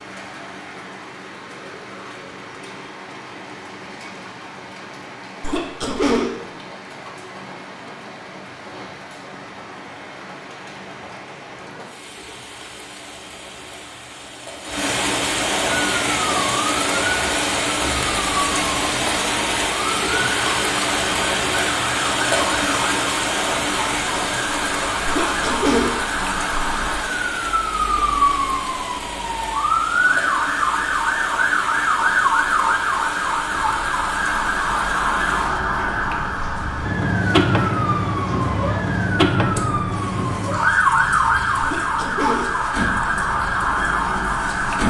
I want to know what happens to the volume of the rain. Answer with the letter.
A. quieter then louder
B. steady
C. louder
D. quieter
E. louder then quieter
E.